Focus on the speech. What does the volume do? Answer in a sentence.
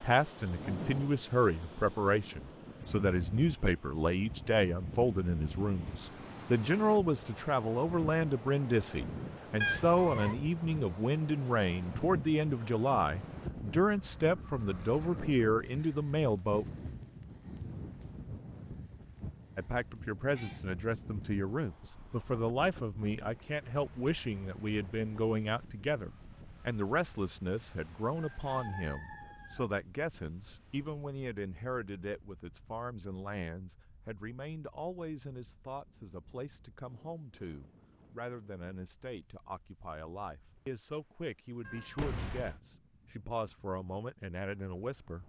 The loudness of the speech goes down.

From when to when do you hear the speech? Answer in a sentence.
The speech can be heard from 0.0 to 16.6 s and from 19.6 to 45.2 s.